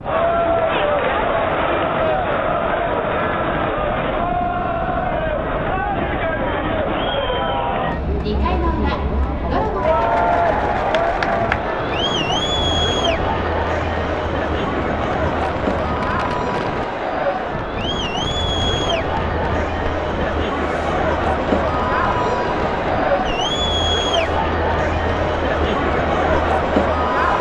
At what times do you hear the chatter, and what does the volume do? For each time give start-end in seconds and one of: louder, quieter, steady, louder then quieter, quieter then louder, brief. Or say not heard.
0.0-27.3 steady.